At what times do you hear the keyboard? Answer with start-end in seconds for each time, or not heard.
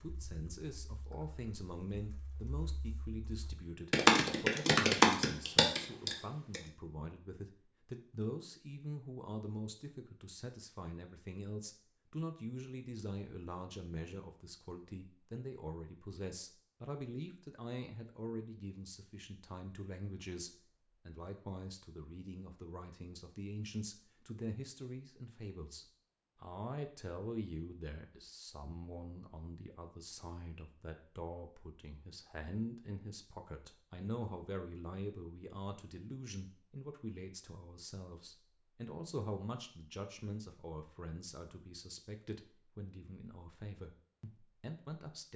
0.0-6.6.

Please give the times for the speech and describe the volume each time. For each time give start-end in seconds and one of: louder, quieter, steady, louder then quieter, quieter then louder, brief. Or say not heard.
0.0-45.3 steady.